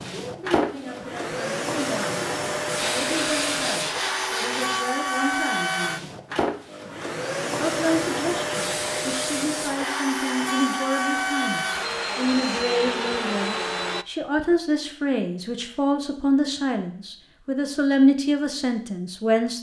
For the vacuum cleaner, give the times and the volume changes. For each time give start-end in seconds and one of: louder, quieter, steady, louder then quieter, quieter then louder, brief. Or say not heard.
0.0-14.1 steady.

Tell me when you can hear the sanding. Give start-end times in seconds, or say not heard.
2.8-4.8.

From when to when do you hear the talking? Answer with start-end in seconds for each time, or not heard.
0.1-6.1, 7.6-19.5.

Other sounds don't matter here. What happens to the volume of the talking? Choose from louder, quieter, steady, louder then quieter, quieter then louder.
louder.